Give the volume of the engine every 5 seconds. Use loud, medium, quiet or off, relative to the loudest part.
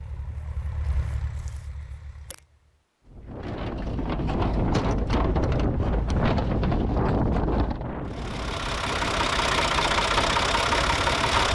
quiet, loud, loud.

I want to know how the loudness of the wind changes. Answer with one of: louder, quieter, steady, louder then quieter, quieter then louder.
quieter.